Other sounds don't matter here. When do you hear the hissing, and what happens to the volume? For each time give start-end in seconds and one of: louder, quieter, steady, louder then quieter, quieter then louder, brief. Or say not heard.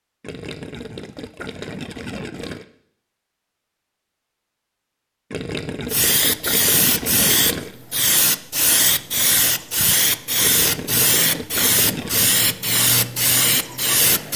5.9-14.3 steady.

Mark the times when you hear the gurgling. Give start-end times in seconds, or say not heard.
0.2-2.6, 5.3-7.8, 10.4-12.3.